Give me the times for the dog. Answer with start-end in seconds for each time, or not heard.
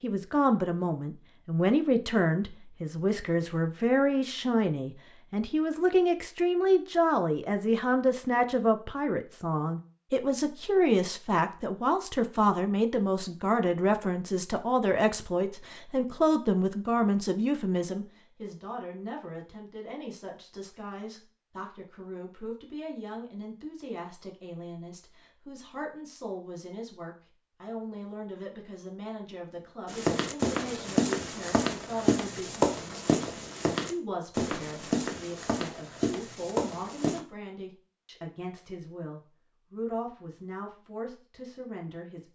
not heard.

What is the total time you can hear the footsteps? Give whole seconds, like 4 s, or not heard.
7 s.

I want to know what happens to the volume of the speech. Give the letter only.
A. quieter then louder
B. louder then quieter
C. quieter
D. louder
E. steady
C.